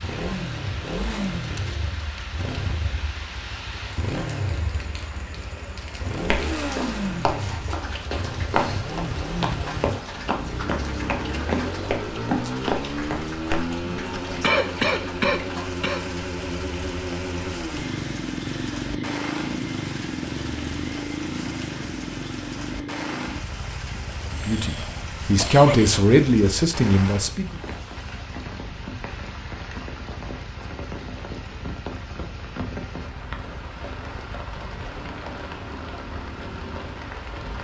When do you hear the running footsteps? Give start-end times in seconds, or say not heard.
6.1-13.7.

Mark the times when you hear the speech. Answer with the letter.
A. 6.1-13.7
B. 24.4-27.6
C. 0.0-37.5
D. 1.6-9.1
B.